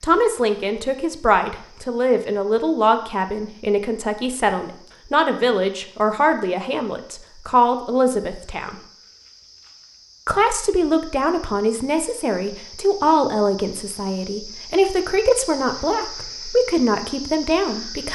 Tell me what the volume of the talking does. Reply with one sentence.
The volume of the talking stays about the same.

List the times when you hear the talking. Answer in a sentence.
The talking can be heard from 0.0 to 8.8 s and from 10.2 to 18.0 s.